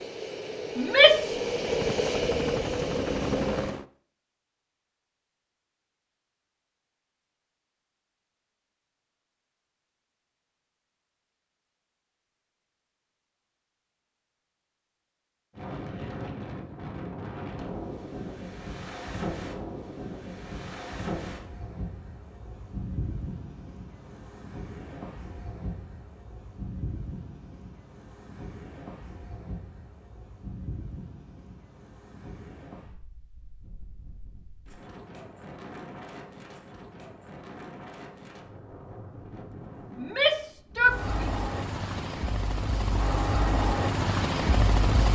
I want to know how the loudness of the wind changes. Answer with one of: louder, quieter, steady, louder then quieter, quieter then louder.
quieter.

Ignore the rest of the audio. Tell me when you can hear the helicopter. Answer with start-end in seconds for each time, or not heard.
0.0-3.9, 40.8-45.1.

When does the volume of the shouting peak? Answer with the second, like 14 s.
1 s.